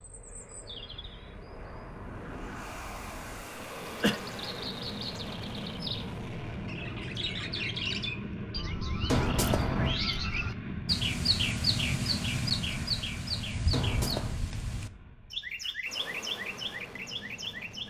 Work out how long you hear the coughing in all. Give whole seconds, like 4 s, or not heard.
3 s.